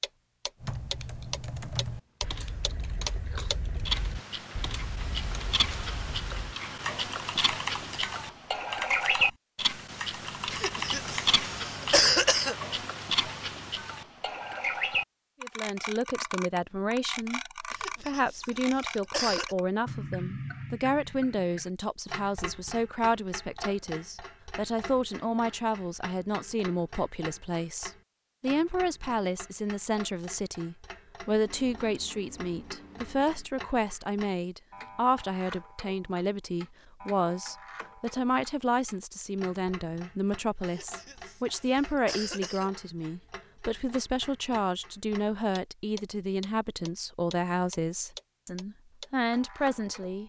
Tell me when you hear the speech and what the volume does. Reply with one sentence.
You can hear the speech from 15.4 to 50.2 s, at a steady volume.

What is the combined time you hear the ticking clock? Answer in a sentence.
You can hear the ticking clock for 50 seconds altogether.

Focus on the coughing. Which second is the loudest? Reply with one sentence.
The loudest moment of the coughing is at 12 seconds.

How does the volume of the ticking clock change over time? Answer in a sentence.
The volume of the ticking clock goes down.